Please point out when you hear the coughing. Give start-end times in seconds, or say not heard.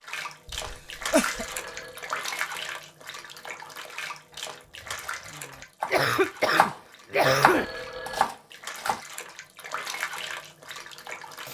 0.5-1.4, 5.9-7.7.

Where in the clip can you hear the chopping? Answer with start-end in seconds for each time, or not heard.
4.3-6.8, 7.4-9.0.